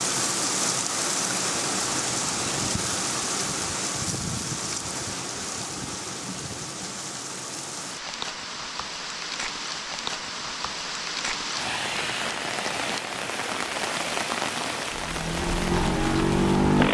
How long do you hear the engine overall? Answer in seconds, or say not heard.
2 s.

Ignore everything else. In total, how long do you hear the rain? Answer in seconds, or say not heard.
17 s.